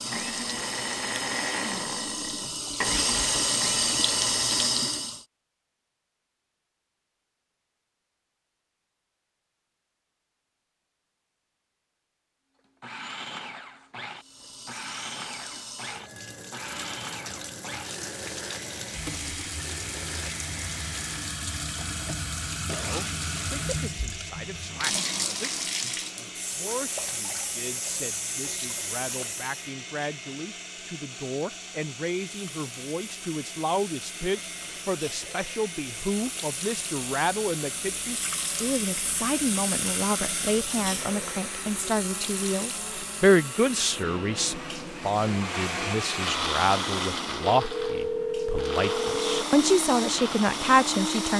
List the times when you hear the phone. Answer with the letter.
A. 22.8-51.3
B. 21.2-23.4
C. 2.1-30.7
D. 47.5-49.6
D.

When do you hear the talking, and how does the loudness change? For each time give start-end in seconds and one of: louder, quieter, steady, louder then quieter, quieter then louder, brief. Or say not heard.
22.8-51.3 louder.